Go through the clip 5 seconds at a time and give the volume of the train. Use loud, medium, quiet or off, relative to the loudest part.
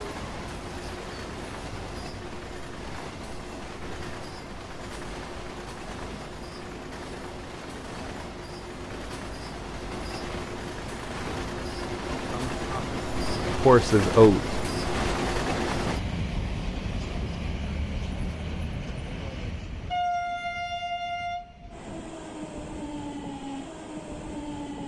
medium, medium, loud, loud, loud.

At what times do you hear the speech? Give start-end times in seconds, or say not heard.
12.1-14.6.